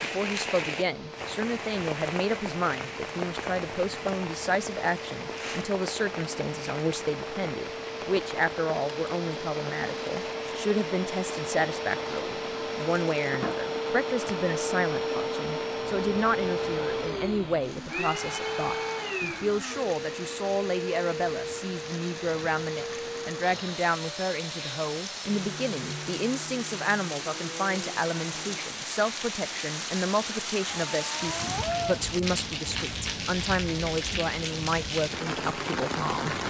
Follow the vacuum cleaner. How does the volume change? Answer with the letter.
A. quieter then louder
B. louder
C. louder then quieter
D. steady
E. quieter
C.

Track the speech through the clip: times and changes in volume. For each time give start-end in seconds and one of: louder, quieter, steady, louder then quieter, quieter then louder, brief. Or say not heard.
0.0-36.4 steady.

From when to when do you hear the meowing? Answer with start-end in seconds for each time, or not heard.
30.6-32.0.